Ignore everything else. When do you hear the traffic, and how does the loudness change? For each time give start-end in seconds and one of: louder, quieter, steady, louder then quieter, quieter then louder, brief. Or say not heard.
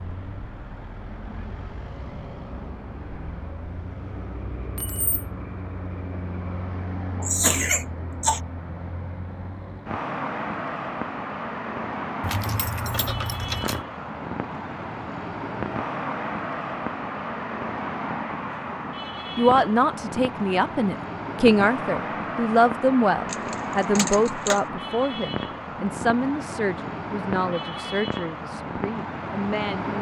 0.0-29.9 louder.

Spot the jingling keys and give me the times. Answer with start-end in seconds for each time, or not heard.
4.8-5.2, 12.2-13.8, 23.2-24.6.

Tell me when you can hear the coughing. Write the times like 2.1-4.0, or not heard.
7.2-8.4.